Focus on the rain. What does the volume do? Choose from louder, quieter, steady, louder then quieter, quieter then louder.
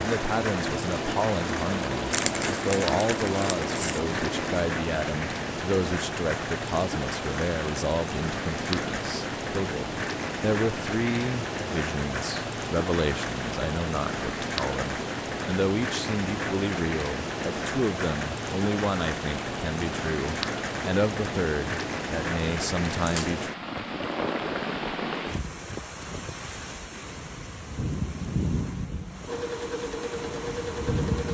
steady.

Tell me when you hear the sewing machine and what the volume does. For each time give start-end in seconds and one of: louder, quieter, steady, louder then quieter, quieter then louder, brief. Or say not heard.
0.0-4.7 steady
29.2-31.3 brief.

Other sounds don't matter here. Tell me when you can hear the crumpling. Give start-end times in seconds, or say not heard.
2.1-4.0, 22.9-23.4.